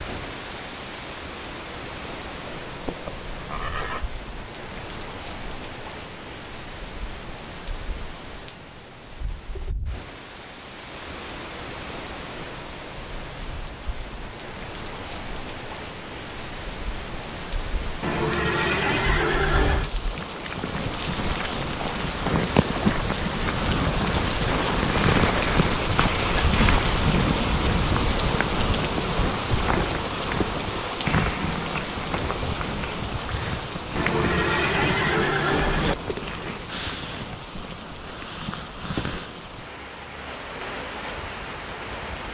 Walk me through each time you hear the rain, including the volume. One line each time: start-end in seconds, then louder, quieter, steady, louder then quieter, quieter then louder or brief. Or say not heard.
0.0-42.2 louder then quieter.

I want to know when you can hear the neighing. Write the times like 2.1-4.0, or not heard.
2.6-4.0, 18.0-19.9, 34.0-36.0.